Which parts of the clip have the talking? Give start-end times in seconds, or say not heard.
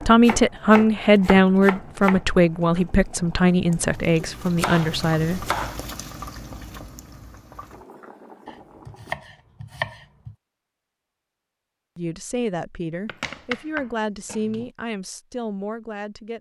0.0-5.5, 11.9-16.3.